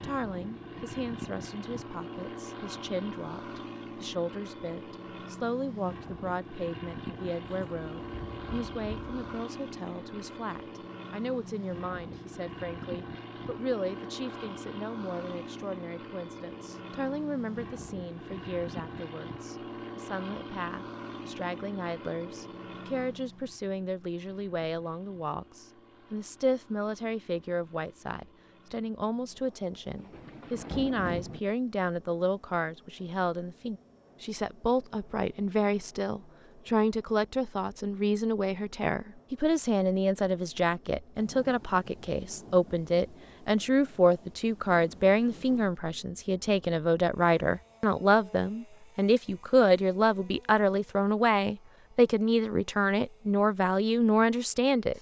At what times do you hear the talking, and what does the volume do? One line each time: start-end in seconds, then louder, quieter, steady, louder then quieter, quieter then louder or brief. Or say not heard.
0.0-54.9 louder.